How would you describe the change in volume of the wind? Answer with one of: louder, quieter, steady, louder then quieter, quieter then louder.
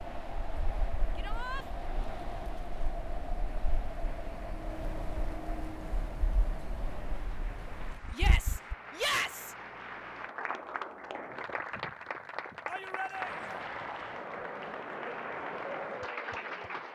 steady.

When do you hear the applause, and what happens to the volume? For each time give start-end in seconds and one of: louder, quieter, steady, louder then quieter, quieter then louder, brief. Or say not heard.
0.0-16.9 louder.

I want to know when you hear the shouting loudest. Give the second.
9 s.